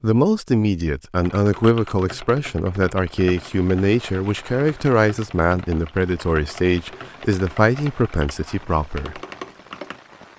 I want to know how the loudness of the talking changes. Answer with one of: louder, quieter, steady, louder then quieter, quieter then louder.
steady.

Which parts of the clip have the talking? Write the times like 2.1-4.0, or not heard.
0.0-9.2.